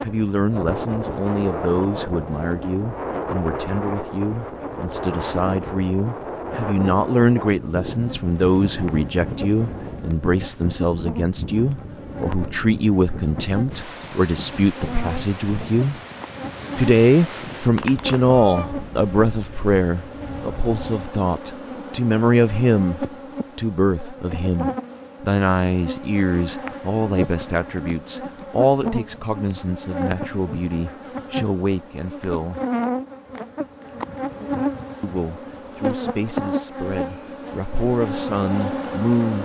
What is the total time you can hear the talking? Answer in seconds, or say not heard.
36 s.